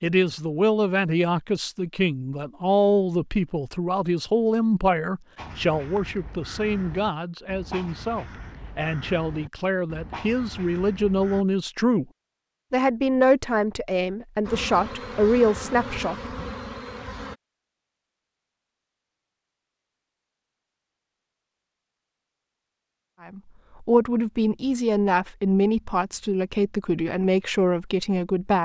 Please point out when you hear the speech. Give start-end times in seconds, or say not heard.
0.0-12.1, 12.7-16.1, 23.2-28.6.